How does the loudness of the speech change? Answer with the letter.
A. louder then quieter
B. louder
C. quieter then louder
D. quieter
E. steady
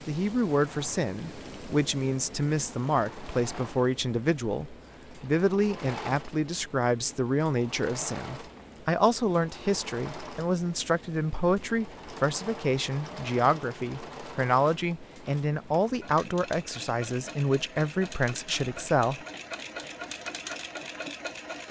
E.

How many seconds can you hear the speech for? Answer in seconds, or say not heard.
19 s.